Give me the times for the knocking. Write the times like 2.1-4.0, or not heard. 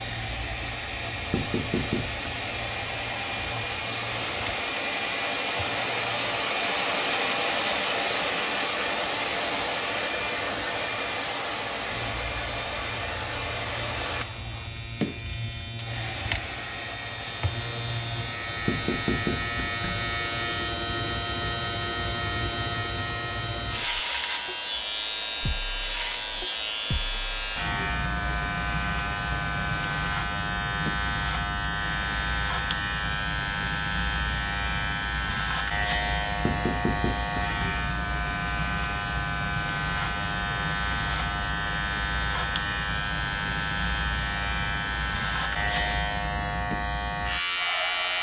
1.3-2.3, 18.6-20.1, 36.4-37.8.